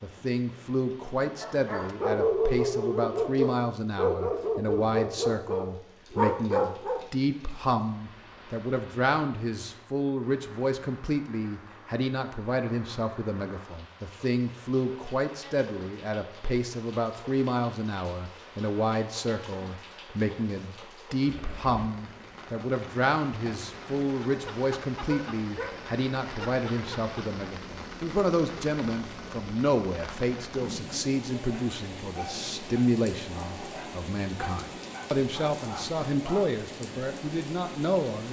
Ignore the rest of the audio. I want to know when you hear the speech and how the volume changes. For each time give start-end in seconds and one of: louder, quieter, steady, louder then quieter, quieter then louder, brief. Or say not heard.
0.0-38.2 steady.